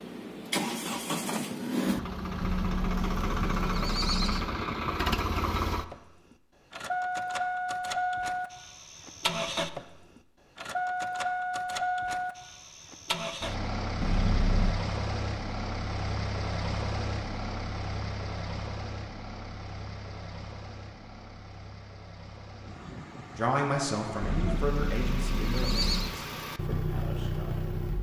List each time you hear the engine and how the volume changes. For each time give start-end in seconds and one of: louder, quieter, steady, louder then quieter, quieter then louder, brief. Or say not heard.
0.0-27.9 quieter.